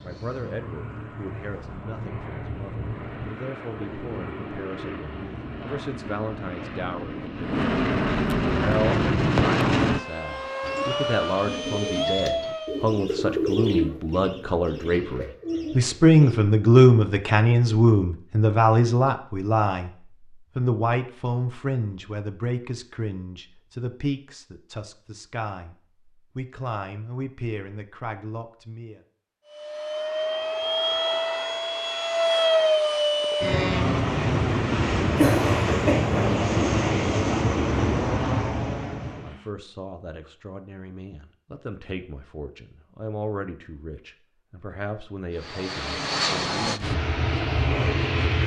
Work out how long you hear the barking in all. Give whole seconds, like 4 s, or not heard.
not heard.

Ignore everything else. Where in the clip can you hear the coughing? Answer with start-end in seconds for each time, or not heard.
35.1-36.4.